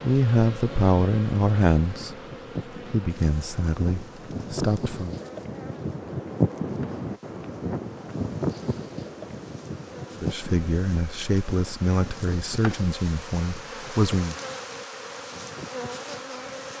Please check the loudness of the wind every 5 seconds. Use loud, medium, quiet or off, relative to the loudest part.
medium, loud, medium, quiet.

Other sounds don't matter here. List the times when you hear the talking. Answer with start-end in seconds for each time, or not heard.
0.0-2.1, 2.9-5.2, 10.2-14.3.